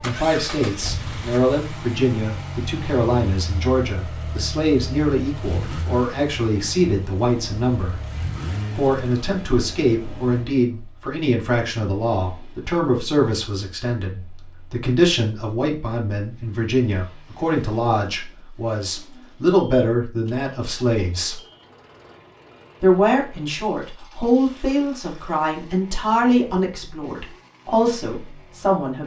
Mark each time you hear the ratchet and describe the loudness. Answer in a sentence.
The ratchet can't be heard in this clip.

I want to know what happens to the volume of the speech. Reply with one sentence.
The volume of the speech stays about the same.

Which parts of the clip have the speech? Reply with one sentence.
The speech can be heard from 0.0 to 8.0 s, from 8.8 to 21.4 s and from 22.8 to 29.0 s.